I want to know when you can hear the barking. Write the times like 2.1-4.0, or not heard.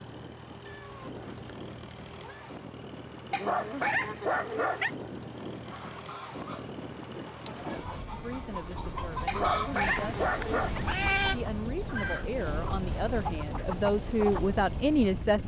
3.3-4.9, 9.2-10.8.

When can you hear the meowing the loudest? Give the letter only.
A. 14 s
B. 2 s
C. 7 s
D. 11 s
D.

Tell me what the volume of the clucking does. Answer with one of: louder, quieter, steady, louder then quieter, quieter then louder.
louder.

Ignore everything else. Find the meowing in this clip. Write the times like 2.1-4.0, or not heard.
0.7-2.5, 9.8-11.3.